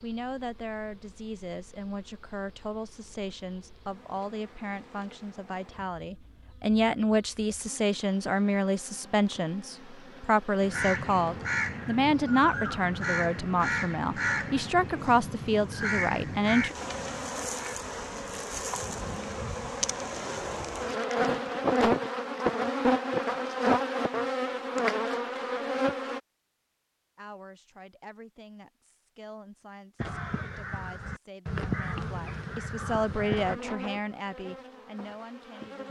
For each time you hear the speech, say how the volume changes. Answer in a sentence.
You can hear the speech from 0.0 to 16.8 s, getting louder; and from 27.1 to 35.8 s, getting louder then quieter.